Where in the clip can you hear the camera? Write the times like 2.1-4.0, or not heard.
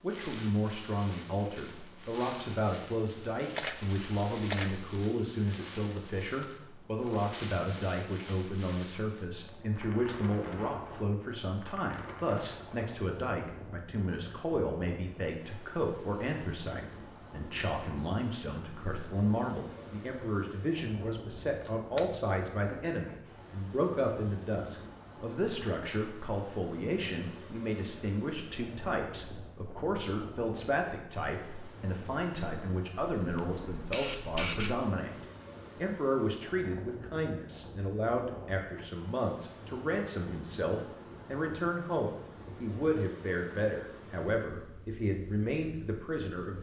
3.5-4.9, 21.6-22.1, 33.0-34.8.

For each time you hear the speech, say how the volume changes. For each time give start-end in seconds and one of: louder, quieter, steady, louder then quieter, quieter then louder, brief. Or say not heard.
0.0-46.5 steady.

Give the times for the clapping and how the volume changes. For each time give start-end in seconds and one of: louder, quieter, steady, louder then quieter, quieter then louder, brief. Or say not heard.
not heard.